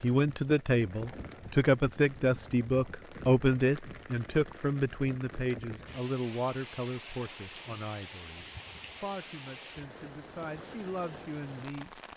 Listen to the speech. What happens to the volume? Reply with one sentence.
The loudness of the speech goes down.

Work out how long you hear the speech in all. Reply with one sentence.
The speech can be heard for 12 seconds in total.